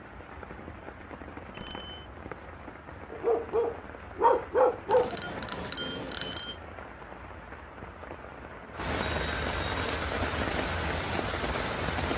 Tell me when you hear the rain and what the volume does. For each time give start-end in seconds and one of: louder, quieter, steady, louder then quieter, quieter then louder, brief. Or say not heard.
0.0-12.1 louder.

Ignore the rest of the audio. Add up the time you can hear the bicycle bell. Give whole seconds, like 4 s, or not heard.
3 s.